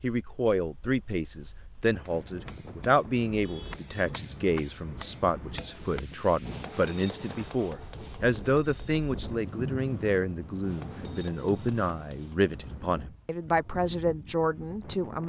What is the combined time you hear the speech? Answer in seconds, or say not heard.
15 s.